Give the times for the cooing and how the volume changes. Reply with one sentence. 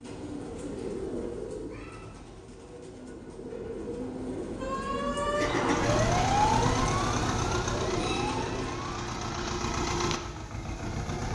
You can hear the cooing from 0.0 to 8.9 s, getting quieter then louder.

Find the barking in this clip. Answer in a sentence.
You can't hear the barking here.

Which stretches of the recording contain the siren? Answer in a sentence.
The siren can be heard from 4.6 to 9.4 s.